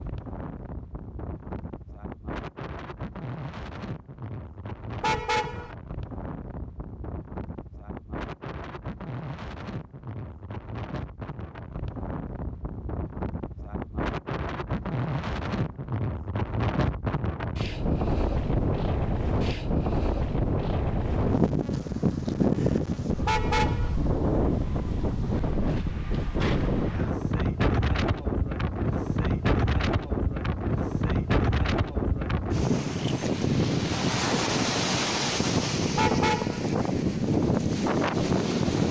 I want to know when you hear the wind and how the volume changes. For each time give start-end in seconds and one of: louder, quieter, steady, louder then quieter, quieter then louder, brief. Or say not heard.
0.0-38.8 louder.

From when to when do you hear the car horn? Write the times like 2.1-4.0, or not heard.
5.0-5.8, 23.2-23.9, 36.0-36.6.